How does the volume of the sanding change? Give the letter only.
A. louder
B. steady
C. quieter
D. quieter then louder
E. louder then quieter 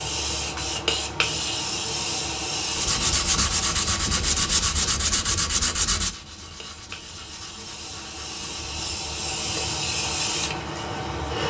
C.